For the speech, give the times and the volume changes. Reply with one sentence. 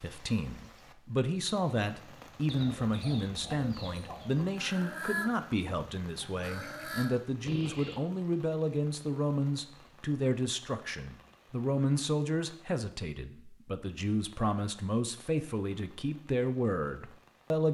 The speech can be heard from 0.0 to 17.6 s, at a steady volume.